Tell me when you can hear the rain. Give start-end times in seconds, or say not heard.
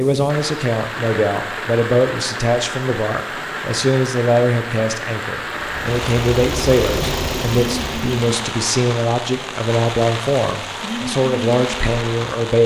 0.0-12.6.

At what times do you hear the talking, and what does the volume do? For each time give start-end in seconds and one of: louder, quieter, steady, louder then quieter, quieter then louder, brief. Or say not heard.
0.0-12.6 steady.